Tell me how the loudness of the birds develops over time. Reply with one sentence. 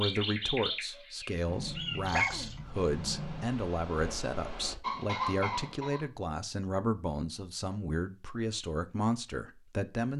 The volume of the birds goes down, then up.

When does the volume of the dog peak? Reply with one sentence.
The volume of the dog peaks at 2 seconds.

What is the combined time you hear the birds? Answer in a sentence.
The birds can be heard for 6 seconds in total.